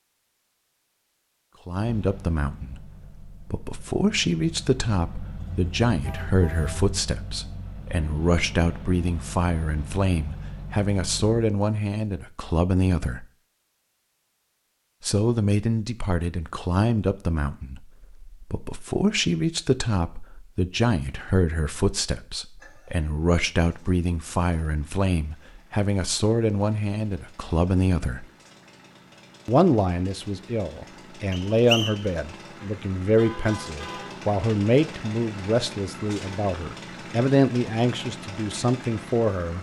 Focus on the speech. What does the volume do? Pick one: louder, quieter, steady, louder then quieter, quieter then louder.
steady.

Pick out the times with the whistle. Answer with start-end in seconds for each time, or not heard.
31.3-32.1.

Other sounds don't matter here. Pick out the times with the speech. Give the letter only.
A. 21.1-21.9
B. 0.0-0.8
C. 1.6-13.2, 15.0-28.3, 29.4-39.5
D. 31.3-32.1
C.